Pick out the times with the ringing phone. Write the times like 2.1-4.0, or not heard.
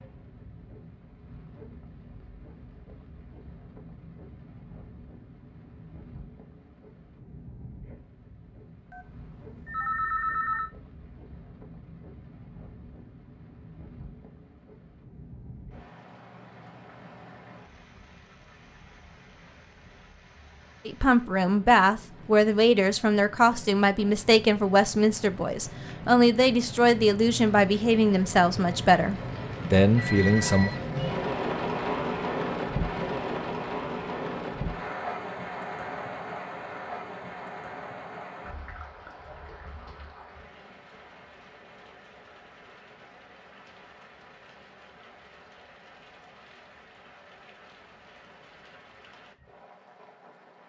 8.9-10.7, 29.9-30.8.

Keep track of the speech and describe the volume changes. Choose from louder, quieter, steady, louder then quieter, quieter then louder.
steady.